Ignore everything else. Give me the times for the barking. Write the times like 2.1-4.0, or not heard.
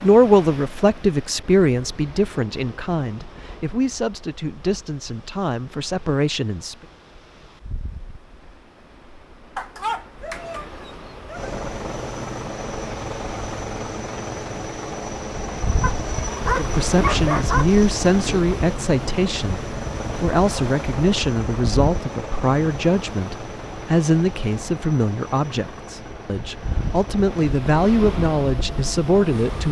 9.6-11.5, 15.8-17.6.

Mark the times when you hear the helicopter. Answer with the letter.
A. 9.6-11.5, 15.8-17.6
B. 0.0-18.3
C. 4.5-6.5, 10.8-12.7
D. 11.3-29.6
D.